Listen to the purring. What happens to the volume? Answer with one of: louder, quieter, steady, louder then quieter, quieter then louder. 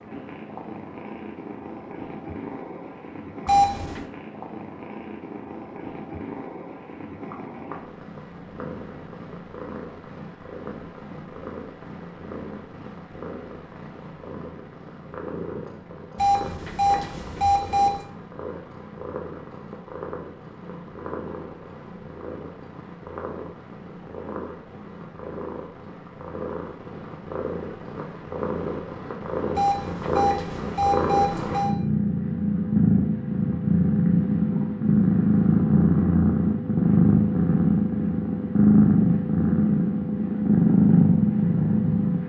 louder.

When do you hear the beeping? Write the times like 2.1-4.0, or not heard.
3.5-4.0, 16.1-18.1, 29.6-31.8.